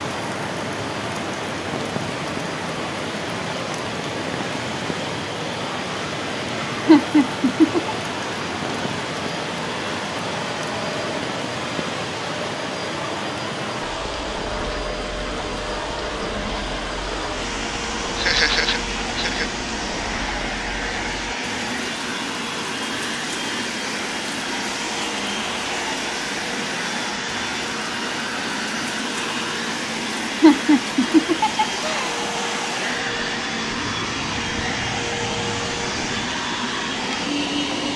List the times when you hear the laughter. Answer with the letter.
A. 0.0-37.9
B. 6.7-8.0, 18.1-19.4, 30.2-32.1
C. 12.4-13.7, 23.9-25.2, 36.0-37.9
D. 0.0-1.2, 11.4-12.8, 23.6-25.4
B.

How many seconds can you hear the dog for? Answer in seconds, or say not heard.
not heard.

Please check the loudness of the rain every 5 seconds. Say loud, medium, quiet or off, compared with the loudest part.
loud, loud, loud, medium, medium, medium, medium, medium.